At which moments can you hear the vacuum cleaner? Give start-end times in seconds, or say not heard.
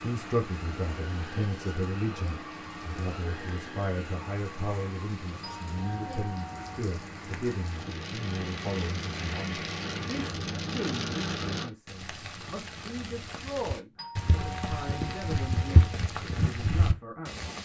0.0-10.3.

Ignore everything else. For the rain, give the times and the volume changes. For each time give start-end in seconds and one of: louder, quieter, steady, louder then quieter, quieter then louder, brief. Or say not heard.
0.0-17.6 louder.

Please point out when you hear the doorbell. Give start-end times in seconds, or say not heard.
5.4-6.8, 13.9-15.9.